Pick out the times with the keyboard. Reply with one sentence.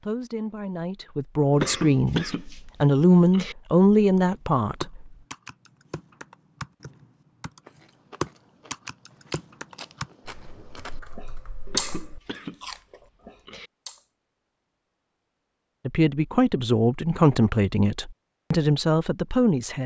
You can hear the keyboard from 4.8 to 7.6 s and from 8.2 to 12.2 s.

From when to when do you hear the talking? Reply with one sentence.
You can hear the talking from 0.0 to 5.0 s and from 15.8 to 19.8 s.